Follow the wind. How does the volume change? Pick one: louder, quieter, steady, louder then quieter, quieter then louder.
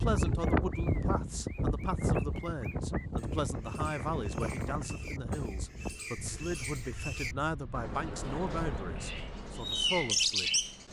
quieter.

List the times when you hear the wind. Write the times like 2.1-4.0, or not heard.
0.0-9.2.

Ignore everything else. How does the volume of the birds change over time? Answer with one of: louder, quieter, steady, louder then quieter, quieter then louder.
louder.